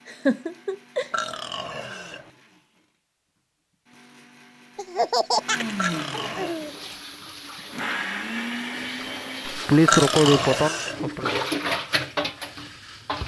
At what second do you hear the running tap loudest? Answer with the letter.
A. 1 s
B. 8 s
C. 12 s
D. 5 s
C.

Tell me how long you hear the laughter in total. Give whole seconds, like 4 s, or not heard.
5 s.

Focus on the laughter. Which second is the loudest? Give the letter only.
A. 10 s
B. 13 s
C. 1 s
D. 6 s
A.